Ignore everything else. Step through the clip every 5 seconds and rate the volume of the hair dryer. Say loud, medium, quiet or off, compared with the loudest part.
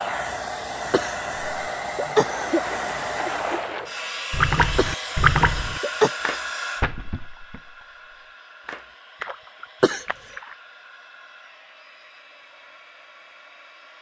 loud, medium, quiet.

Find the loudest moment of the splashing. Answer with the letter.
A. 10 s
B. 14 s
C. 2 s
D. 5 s
D.